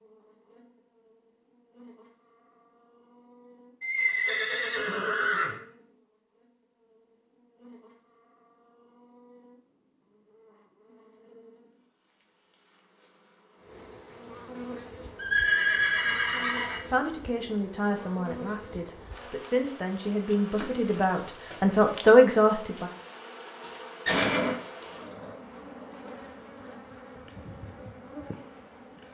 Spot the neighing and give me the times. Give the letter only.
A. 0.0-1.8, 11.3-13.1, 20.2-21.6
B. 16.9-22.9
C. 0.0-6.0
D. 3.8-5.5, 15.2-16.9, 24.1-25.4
D.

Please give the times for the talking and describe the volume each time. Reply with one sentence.
You can hear the talking from 16.9 to 22.9 s, getting quieter then louder.